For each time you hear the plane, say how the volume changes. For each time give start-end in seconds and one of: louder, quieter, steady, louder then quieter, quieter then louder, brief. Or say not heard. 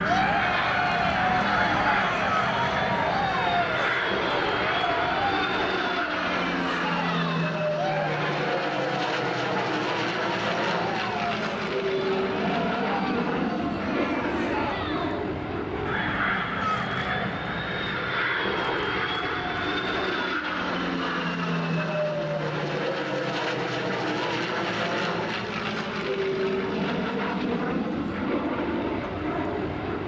0.0-30.0 steady.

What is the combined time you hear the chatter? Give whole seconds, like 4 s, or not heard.
15 s.